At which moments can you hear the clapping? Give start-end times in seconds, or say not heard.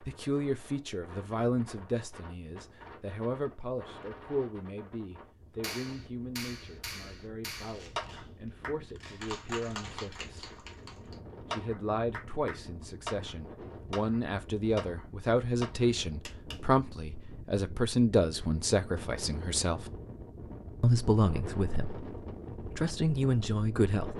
5.6-16.6.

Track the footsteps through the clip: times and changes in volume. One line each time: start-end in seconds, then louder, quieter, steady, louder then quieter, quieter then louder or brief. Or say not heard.
not heard.